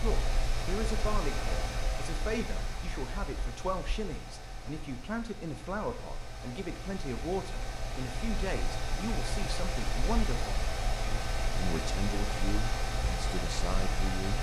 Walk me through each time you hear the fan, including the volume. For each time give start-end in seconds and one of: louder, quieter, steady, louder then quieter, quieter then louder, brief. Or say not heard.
0.0-14.3 quieter then louder.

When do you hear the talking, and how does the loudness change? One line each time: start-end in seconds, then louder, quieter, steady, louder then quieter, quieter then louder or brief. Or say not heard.
0.0-14.3 steady.